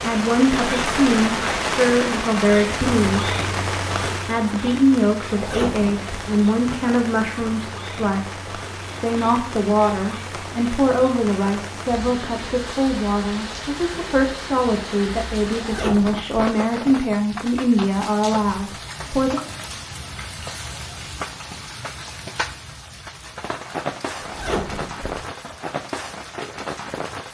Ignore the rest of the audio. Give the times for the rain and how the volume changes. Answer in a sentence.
The rain can be heard from 0.0 to 27.3 s, getting quieter.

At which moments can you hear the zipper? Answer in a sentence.
The zipper can be heard from 5.3 to 6.3 s, from 15.5 to 16.4 s and from 24.1 to 25.1 s.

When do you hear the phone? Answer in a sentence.
The phone can't be heard in this clip.